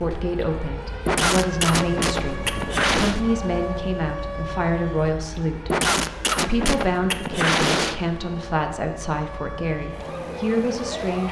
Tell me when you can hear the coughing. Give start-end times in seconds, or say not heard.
1.1-3.2, 5.7-8.0.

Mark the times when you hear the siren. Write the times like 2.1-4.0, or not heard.
0.0-11.2.